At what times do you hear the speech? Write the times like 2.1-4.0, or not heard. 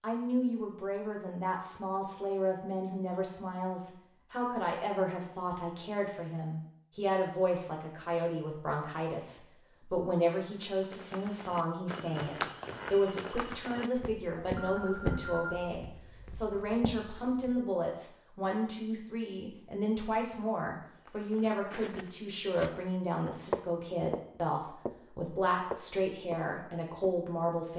0.0-27.7.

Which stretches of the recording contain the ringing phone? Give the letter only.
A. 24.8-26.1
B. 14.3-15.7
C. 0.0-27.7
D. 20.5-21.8
B.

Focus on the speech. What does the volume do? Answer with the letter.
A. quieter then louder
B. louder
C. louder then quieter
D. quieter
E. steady
E.